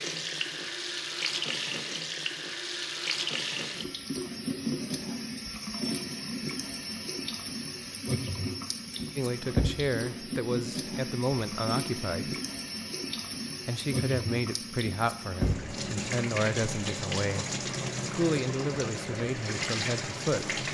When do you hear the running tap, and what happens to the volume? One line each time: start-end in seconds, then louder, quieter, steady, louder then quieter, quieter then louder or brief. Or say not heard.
0.0-20.7 steady.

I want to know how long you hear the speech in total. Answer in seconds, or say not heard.
10 s.